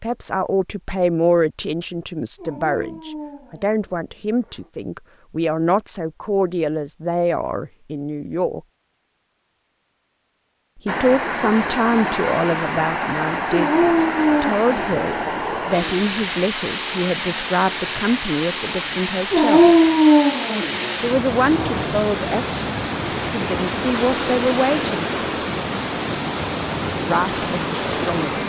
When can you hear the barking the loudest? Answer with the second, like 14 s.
20 s.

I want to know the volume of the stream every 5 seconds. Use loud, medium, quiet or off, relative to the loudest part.
off, off, loud, loud, loud, loud.